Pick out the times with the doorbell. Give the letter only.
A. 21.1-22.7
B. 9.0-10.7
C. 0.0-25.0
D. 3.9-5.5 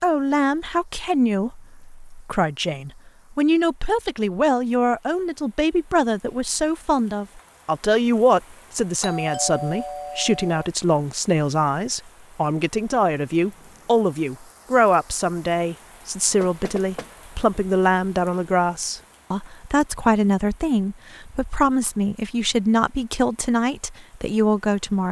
B.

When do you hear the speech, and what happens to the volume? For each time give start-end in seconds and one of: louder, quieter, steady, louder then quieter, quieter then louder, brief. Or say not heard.
0.0-25.0 steady.